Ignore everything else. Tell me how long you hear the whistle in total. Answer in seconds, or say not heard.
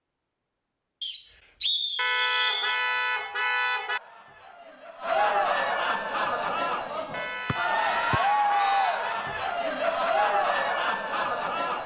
3 s.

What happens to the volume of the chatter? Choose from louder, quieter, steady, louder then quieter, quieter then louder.
louder.